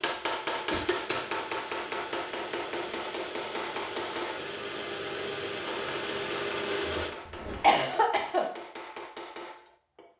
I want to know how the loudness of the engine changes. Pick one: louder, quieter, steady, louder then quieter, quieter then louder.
louder.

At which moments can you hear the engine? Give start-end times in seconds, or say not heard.
0.0-7.2.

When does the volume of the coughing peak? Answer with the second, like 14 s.
8 s.